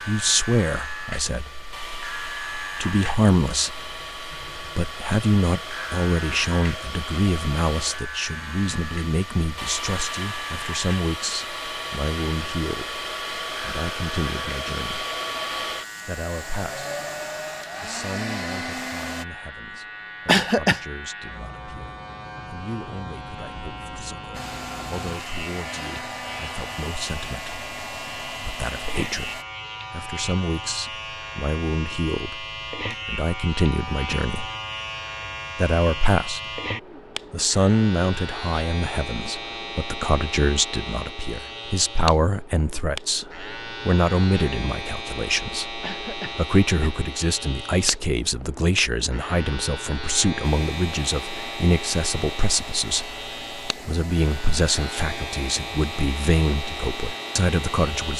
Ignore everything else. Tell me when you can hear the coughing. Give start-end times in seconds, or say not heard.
20.2-20.8, 45.8-47.0.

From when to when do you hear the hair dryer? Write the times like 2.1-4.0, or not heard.
0.0-19.2, 24.3-29.4, 50.5-58.1.